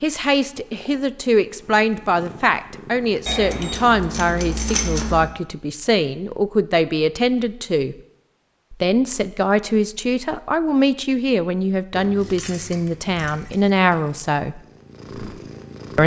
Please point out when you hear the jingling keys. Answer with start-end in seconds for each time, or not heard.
3.2-5.2, 11.9-13.7.